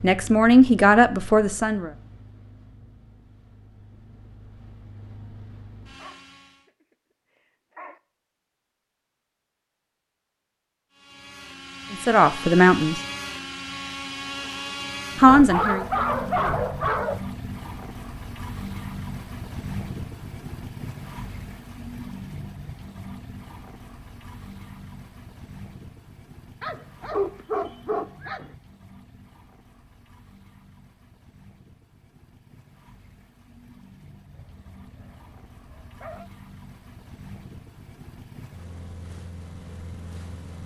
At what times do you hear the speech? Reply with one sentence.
The speech can be heard from 0.0 to 1.9 s, from 11.9 to 13.0 s and from 15.2 to 15.8 s.